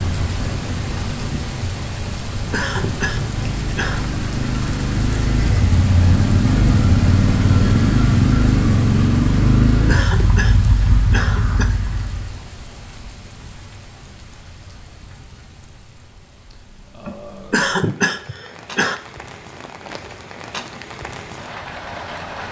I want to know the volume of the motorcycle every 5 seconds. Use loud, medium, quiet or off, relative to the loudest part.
medium, loud, medium, off, off.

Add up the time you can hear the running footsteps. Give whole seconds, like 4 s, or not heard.
not heard.